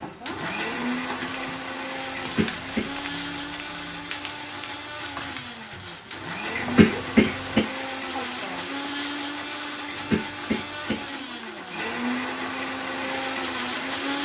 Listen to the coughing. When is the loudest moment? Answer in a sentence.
The loudest moment of the coughing is at 7 seconds.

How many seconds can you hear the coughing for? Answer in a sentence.
You can hear the coughing for 3 seconds altogether.